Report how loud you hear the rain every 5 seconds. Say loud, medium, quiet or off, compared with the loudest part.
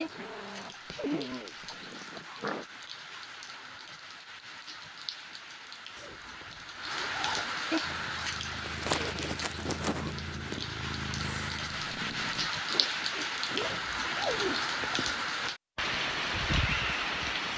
quiet, medium, loud, loud.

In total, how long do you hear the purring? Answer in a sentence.
You can hear the purring for 5 seconds altogether.